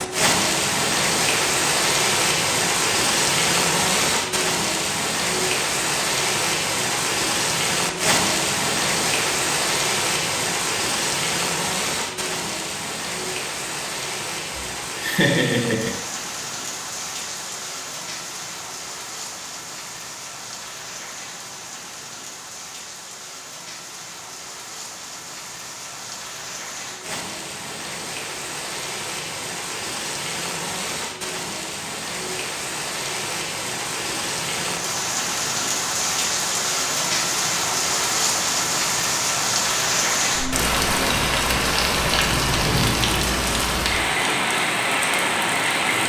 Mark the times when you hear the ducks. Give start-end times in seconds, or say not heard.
not heard.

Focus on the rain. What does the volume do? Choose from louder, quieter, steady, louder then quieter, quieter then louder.
quieter then louder.